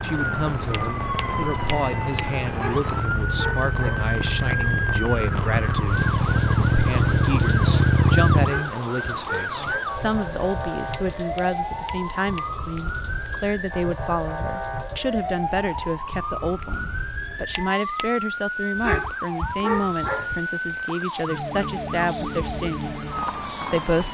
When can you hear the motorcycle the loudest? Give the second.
8 s.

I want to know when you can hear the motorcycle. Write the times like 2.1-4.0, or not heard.
0.0-8.6.